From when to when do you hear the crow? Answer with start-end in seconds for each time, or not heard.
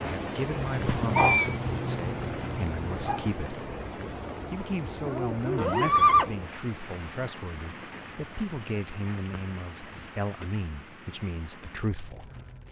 not heard.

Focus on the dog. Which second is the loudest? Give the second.
1 s.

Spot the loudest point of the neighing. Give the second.
6 s.